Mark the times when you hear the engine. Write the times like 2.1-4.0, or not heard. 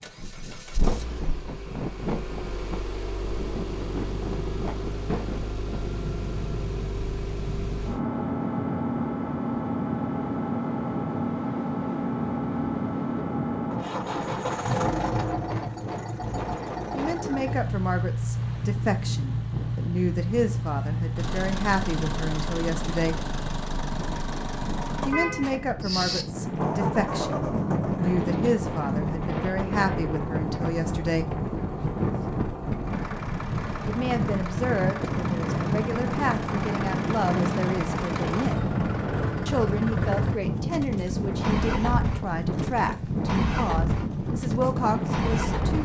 0.0-45.8.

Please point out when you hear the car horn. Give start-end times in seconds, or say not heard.
25.1-26.2.